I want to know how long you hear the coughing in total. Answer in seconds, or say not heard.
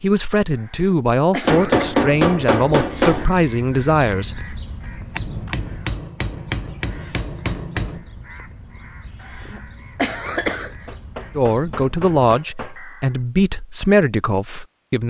3 s.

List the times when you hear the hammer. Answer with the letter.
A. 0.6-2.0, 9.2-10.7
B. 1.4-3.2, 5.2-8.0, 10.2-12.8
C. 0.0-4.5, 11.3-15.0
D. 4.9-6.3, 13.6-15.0
B.